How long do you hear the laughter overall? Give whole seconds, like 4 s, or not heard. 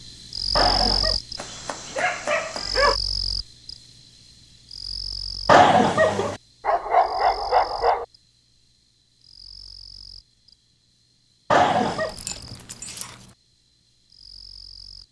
2 s.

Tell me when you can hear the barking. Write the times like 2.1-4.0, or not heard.
1.4-3.0, 6.6-8.1, 12.1-13.2.